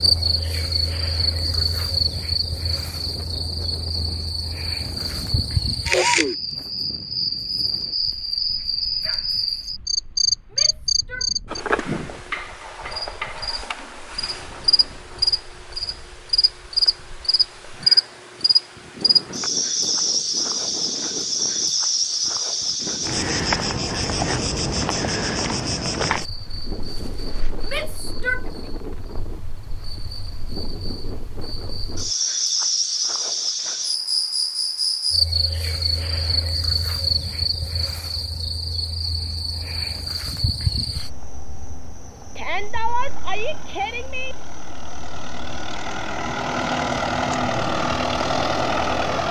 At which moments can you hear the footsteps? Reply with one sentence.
You can't hear the footsteps here.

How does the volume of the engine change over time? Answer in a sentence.
The volume of the engine goes up.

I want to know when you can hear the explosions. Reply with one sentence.
The explosions can't be heard in this clip.